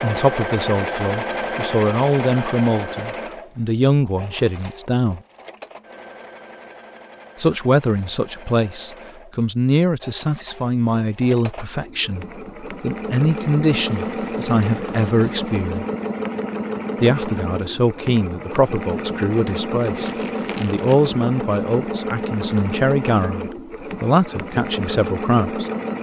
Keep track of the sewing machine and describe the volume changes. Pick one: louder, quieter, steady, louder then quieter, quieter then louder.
quieter then louder.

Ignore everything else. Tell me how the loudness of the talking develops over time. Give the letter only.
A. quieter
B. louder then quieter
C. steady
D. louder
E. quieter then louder
C.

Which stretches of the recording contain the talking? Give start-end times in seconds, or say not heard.
0.0-5.2, 7.3-15.8, 17.0-25.7.